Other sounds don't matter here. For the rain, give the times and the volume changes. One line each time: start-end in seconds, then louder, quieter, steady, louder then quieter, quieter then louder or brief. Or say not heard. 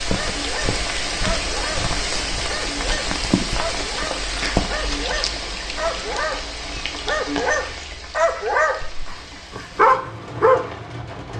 0.0-11.3 quieter.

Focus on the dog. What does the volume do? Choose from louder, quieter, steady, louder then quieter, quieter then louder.
louder.